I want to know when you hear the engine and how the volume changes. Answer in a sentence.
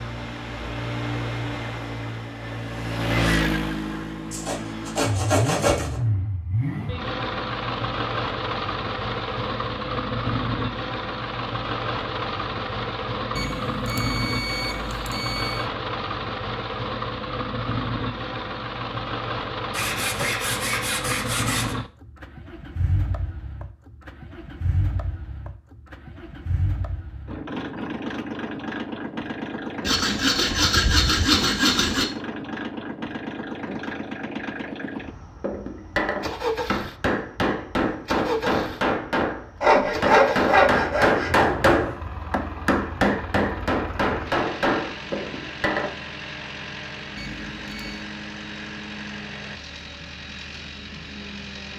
You can hear the engine from 0.0 to 51.7 s, getting quieter.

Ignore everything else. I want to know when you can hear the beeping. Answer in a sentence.
You can hear the beeping from 13.3 to 15.7 s and from 47.1 to 48.1 s.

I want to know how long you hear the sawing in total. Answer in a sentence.
You can hear the sawing for 8 seconds altogether.